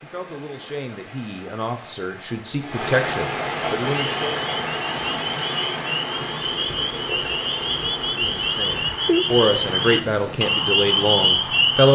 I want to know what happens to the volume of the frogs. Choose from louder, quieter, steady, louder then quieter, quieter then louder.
louder.